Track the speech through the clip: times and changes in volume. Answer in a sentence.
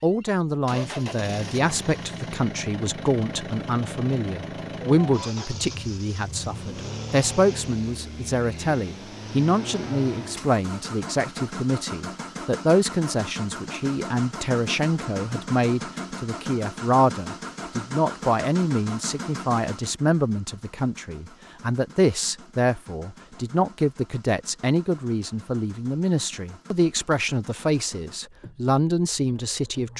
The speech can be heard from 0.0 to 29.9 s, at a steady volume.